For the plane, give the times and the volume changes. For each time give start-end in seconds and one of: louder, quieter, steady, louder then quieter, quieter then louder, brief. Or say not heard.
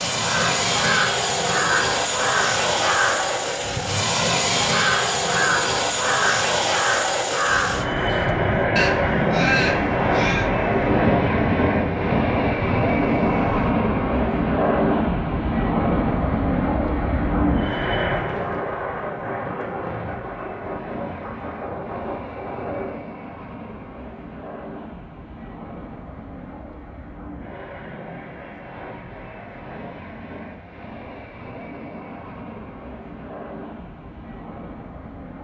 0.0-35.4 quieter.